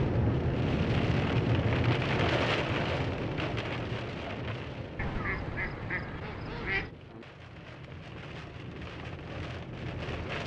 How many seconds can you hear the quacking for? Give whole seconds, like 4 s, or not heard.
2 s.